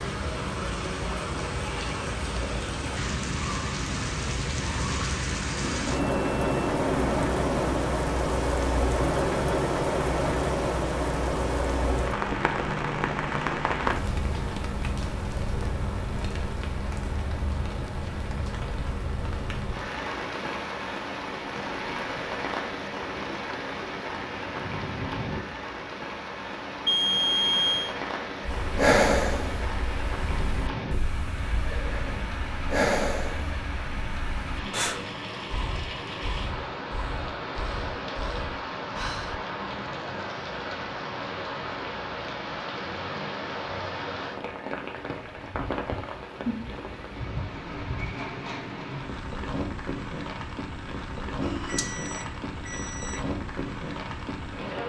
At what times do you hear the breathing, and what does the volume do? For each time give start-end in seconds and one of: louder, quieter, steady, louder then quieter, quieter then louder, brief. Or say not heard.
28.4-39.4 quieter.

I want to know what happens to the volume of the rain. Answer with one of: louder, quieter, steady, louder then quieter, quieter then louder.
quieter.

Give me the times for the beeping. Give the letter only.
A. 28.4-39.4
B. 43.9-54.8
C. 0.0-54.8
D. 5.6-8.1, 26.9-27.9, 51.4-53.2
D.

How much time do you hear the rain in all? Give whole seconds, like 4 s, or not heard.
55 s.